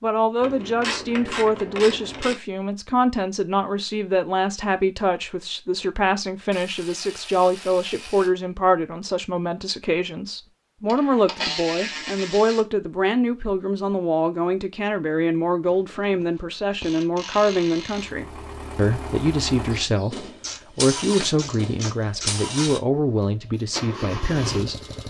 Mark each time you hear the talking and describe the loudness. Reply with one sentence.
You can hear the talking from 0.0 to 24.9 s, at a steady volume.